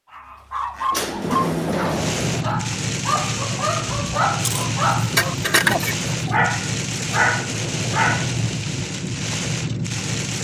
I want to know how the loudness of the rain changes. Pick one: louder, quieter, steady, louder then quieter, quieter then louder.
steady.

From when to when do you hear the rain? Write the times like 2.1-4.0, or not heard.
1.9-10.3.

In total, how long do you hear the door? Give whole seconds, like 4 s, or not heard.
3 s.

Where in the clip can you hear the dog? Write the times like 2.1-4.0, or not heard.
0.1-8.3.